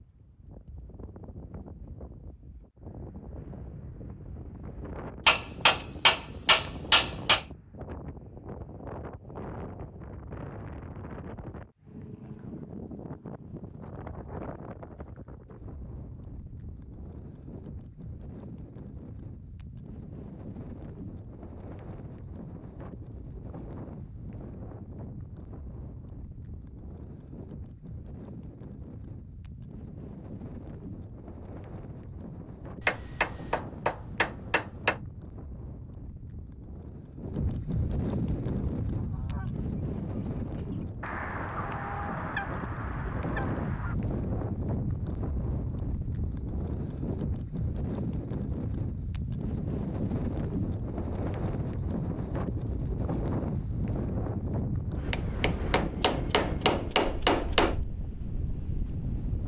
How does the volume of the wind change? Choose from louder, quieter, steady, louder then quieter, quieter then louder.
louder.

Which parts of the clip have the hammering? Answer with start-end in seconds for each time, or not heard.
5.2-7.5, 32.9-35.0, 55.1-57.8.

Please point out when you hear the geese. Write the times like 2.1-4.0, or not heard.
38.4-44.0.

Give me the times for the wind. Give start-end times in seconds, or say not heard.
0.0-59.4.